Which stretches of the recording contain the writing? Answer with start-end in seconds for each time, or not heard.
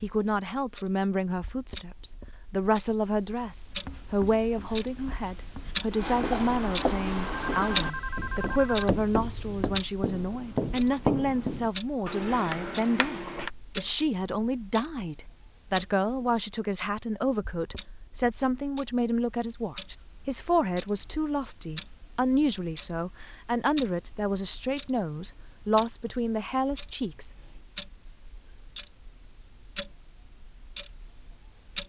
3.7-13.5.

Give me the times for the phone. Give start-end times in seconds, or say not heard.
7.2-8.8.